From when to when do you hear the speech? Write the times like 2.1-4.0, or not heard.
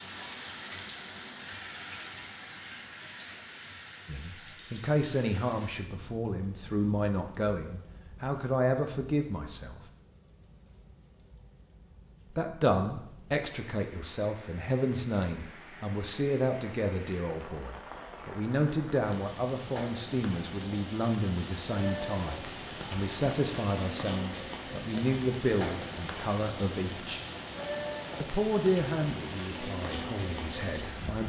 4.0-9.8, 12.3-27.2, 28.2-31.2.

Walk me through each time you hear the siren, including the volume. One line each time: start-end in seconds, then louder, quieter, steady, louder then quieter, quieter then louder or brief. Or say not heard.
not heard.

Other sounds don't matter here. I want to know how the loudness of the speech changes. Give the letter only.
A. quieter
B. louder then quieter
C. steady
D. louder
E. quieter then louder
C.